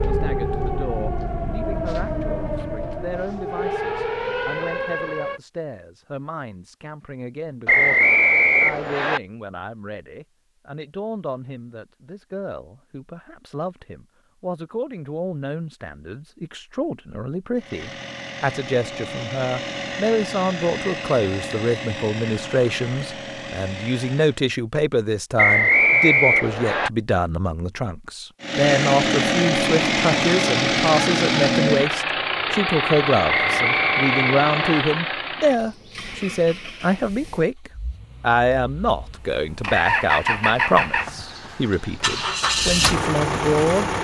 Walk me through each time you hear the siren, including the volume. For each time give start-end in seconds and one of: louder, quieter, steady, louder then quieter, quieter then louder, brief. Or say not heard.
0.0-5.4 steady.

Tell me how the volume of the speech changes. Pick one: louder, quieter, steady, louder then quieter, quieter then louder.
louder.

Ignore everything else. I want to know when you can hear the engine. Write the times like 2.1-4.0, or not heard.
17.6-24.4, 28.4-43.9.